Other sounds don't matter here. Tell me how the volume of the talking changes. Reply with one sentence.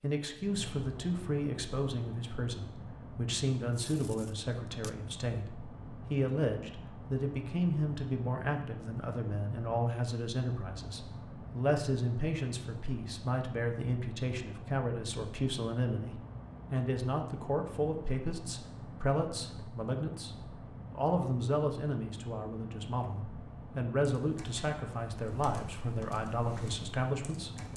The volume of the talking stays about the same.